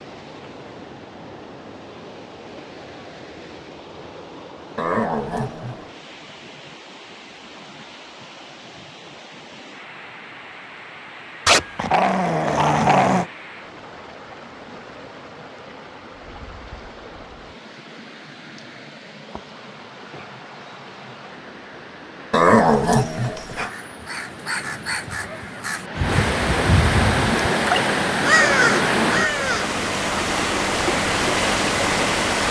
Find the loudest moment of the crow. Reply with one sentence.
The loudest moment of the crow is at 28 seconds.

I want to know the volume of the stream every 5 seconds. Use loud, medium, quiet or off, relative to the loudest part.
quiet, quiet, quiet, quiet, quiet, loud, loud.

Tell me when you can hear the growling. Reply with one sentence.
The growling can be heard from 4.8 to 5.8 s, from 11.4 to 13.2 s and from 22.3 to 23.7 s.